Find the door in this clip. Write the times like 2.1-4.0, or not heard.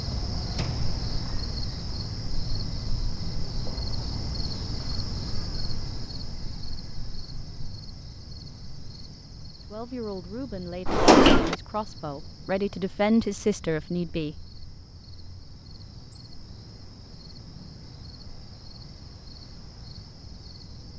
0.5-0.9, 10.8-11.6.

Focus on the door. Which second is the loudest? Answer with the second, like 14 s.
11 s.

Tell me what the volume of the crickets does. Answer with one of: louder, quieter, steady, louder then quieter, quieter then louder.
quieter.